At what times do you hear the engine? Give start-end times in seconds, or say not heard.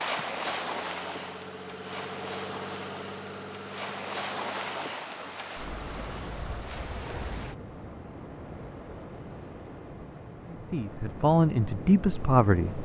0.0-6.8.